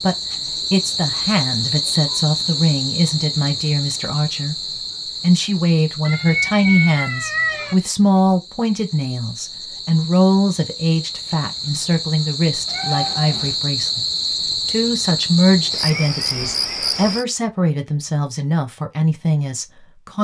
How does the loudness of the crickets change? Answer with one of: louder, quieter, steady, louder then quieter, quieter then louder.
quieter then louder.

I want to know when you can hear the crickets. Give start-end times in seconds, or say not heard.
0.0-17.2.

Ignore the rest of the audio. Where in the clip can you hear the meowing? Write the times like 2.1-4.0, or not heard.
6.0-7.8, 12.7-13.6.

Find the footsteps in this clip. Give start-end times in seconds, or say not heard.
not heard.